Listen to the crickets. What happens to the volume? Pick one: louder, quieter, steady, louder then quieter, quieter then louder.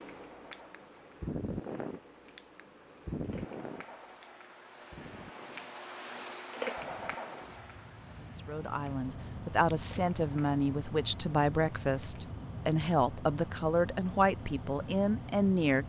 louder then quieter.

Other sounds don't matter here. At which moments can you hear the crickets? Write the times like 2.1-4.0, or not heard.
0.0-12.3.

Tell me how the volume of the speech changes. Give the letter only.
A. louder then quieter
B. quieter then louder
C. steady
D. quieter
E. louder
C.